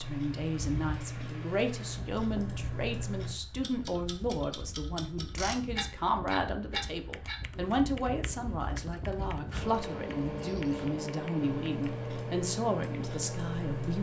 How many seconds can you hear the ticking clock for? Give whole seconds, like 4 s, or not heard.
14 s.